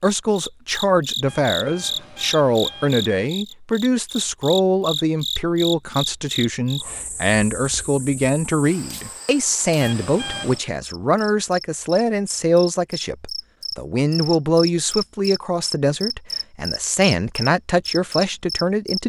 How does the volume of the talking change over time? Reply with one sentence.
The volume of the talking stays about the same.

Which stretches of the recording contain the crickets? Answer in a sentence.
The crickets can be heard from 0.0 to 19.0 s.